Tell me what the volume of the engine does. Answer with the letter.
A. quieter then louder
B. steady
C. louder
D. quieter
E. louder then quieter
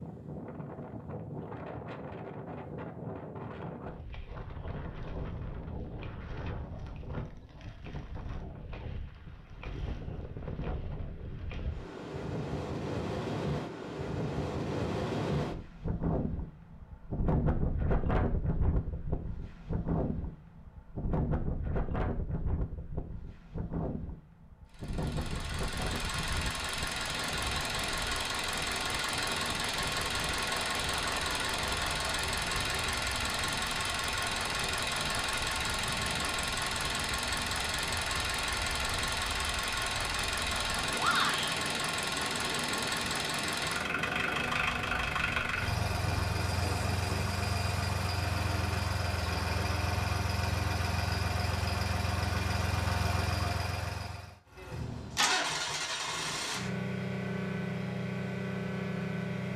B.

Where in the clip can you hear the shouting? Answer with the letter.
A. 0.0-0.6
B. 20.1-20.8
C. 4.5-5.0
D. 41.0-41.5
D.